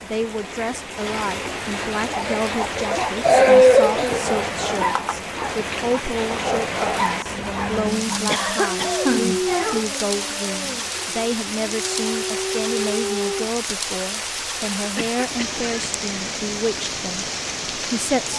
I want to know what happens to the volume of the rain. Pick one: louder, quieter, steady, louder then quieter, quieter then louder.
steady.